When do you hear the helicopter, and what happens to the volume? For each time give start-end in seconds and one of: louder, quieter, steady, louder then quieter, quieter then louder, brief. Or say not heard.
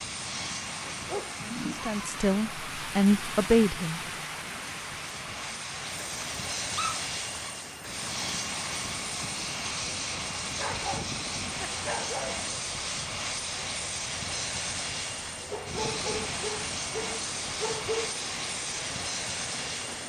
0.0-20.0 louder.